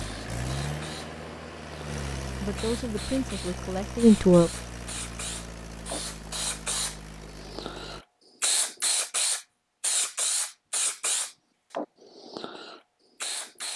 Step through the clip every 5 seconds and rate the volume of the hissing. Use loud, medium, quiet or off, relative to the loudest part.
medium, loud, loud.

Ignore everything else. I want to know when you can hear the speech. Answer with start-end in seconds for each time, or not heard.
2.4-4.5.